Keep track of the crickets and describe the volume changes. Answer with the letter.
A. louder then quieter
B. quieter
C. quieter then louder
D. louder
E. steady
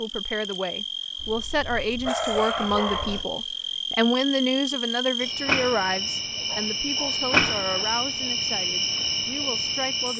D.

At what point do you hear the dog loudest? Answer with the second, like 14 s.
2 s.